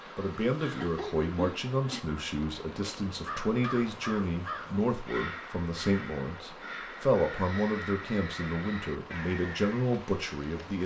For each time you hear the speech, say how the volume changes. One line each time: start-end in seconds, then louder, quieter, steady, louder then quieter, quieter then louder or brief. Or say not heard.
0.1-10.8 steady.